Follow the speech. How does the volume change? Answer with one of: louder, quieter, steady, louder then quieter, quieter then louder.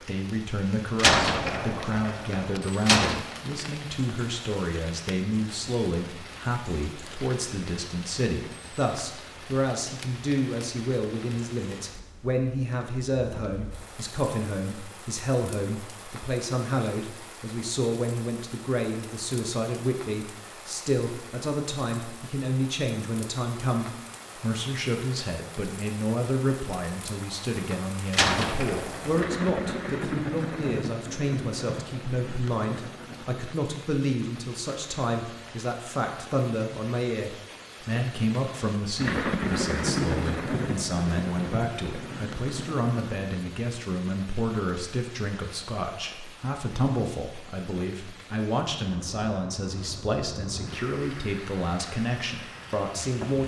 steady.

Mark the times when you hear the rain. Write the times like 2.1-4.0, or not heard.
0.0-53.4.